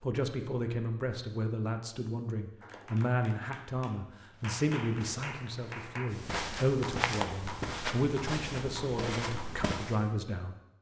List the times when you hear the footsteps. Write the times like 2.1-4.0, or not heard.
4.3-10.1.